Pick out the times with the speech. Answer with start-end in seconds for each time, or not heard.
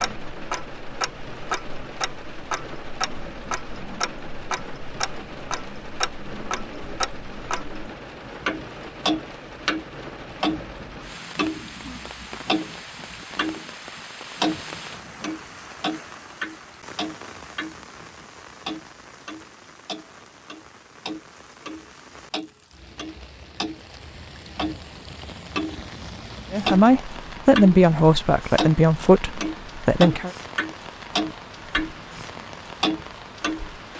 26.5-30.3.